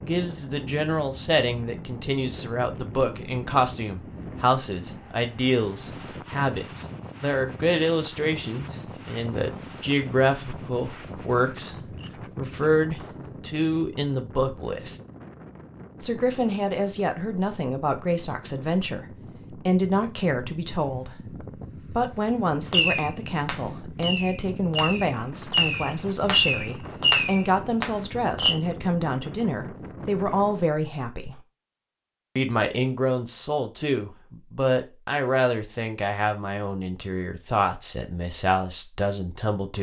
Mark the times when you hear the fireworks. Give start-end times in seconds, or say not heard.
22.7-28.6.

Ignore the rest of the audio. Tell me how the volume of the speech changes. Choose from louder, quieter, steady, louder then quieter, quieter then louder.
steady.